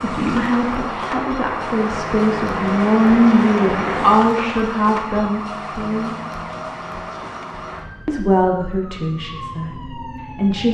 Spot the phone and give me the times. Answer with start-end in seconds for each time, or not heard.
not heard.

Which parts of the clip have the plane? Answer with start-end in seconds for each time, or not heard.
0.0-4.2.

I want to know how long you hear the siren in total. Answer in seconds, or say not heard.
11 s.